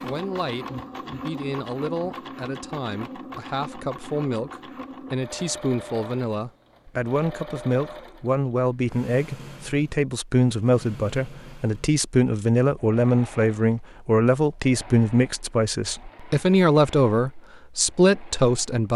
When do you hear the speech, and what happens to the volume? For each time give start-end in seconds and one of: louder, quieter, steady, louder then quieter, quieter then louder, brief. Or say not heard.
0.0-18.9 louder.